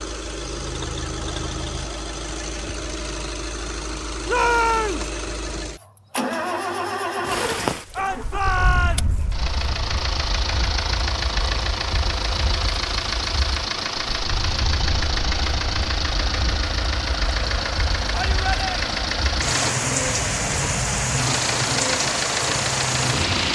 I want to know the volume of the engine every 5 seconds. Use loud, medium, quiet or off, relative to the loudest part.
medium, loud, loud, loud, loud.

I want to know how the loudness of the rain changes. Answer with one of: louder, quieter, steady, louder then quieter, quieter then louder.
quieter then louder.